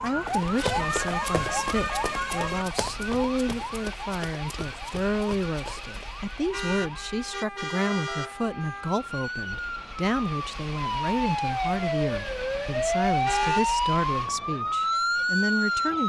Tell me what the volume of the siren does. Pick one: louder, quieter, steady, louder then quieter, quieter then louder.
quieter then louder.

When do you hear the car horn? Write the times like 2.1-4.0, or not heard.
0.6-2.6, 6.5-8.3, 13.2-13.7.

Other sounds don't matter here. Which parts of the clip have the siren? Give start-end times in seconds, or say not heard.
0.0-16.0.